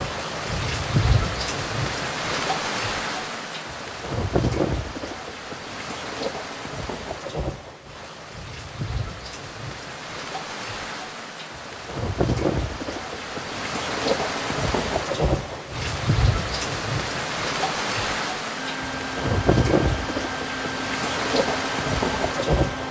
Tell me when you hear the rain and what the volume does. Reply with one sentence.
The rain can be heard from 0.0 to 22.8 s, getting quieter then louder.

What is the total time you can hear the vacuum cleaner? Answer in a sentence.
The vacuum cleaner can be heard for 4 seconds in total.